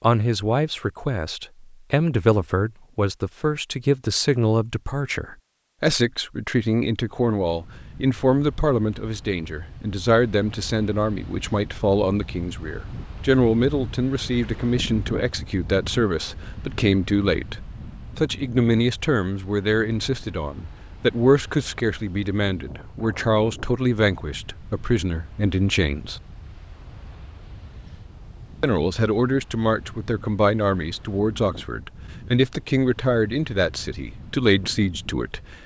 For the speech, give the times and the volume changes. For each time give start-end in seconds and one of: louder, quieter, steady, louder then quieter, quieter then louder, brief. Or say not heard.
0.0-26.2 steady
28.6-35.5 steady.